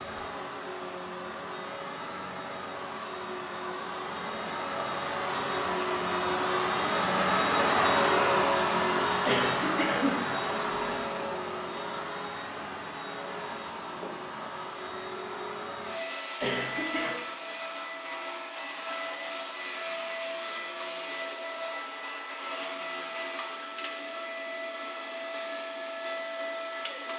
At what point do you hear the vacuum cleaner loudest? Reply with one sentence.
The loudest moment of the vacuum cleaner is at 8 seconds.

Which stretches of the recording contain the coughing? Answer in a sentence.
You can hear the coughing from 9.2 to 11.0 s and from 16.4 to 17.1 s.